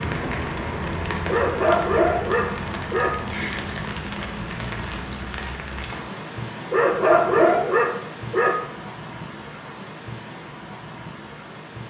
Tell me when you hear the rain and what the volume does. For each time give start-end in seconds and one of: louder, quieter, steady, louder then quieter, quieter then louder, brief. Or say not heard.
0.0-11.8 quieter.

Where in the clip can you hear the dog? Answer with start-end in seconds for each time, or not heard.
1.2-3.1, 6.7-8.6.